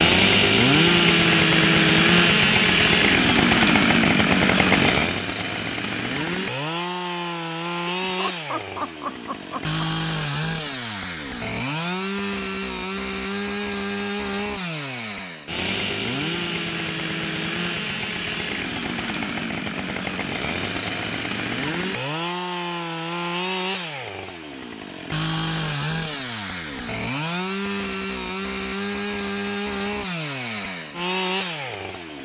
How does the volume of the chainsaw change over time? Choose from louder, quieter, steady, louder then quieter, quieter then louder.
quieter.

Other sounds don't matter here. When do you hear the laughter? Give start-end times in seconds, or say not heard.
7.8-9.8.